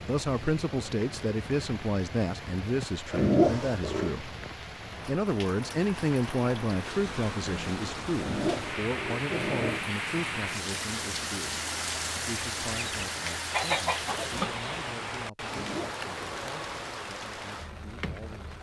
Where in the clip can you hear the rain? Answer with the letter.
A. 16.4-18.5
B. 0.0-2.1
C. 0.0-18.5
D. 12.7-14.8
C.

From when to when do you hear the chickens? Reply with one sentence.
The chickens can be heard from 12.7 to 14.8 s.